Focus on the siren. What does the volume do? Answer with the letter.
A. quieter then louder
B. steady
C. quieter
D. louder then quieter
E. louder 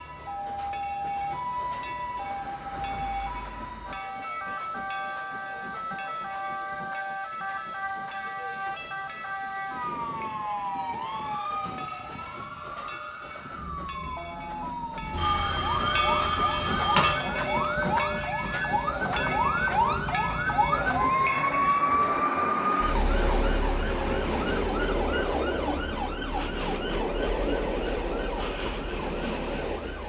D.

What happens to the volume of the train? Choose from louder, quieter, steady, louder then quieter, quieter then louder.
louder.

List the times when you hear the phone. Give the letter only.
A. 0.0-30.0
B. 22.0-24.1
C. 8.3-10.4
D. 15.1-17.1
D.